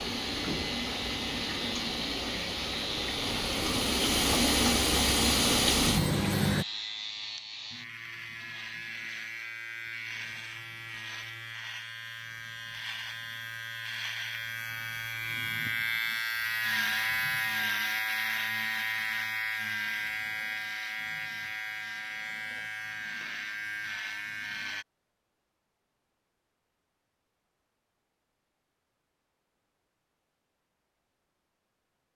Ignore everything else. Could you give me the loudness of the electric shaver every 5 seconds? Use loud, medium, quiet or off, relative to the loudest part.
medium, medium, medium, loud, medium, off, off.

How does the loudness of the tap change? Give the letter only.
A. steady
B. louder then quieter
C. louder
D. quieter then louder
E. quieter
C.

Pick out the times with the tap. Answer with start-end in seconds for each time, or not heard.
0.0-6.7.